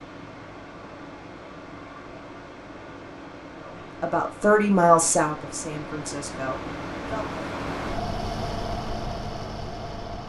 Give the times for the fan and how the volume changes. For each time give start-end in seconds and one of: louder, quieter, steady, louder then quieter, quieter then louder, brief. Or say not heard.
0.0-10.2 louder.